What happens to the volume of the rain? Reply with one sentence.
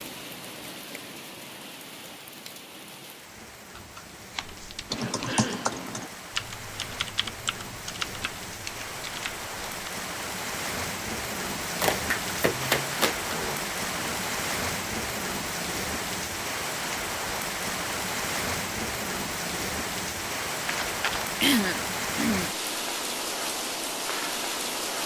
The loudness of the rain goes up.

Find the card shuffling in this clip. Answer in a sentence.
The card shuffling can be heard from 3.8 to 5.5 s, from 11.8 to 13.3 s and from 20.6 to 21.3 s.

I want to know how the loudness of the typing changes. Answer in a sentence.
The loudness of the typing goes down.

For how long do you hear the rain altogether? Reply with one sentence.
The rain can be heard for 25 seconds in total.